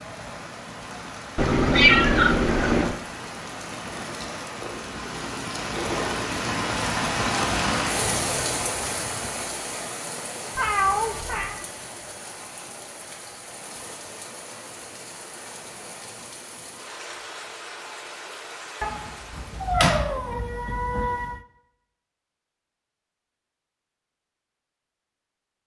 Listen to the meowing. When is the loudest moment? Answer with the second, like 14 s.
2 s.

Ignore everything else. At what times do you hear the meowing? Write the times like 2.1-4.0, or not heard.
1.4-3.0, 10.6-11.6, 18.8-21.4.